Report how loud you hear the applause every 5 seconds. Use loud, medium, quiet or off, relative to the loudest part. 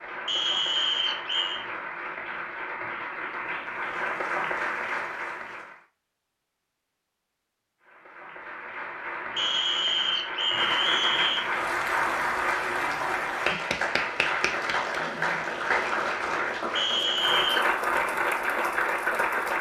medium, medium, loud, loud.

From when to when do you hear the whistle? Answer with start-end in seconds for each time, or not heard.
0.2-1.6, 9.3-11.4, 16.8-17.6.